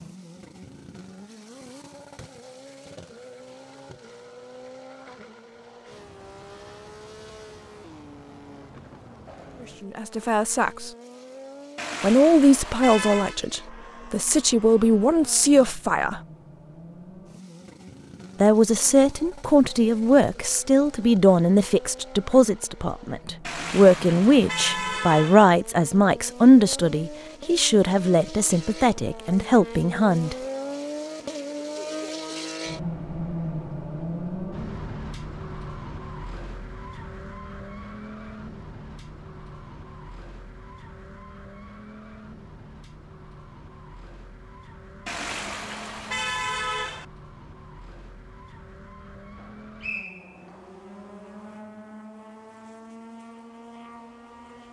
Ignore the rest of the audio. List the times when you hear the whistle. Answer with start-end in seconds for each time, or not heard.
49.8-50.6.